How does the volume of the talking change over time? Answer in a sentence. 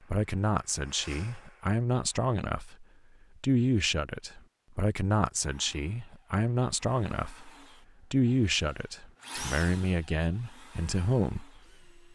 The loudness of the talking stays about the same.